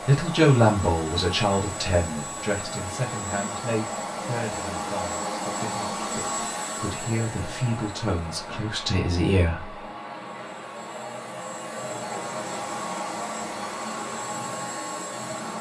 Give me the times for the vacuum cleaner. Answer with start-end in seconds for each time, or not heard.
0.0-15.5.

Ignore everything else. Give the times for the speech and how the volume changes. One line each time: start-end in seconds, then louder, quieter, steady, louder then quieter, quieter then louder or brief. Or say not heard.
0.0-9.8 quieter then louder.